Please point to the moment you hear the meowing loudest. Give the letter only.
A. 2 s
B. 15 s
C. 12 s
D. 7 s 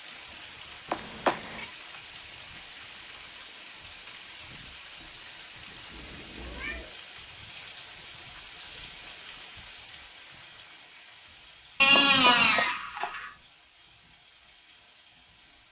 C.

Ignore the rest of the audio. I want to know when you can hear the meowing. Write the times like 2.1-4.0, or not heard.
0.8-1.7, 5.9-7.0, 11.8-13.3.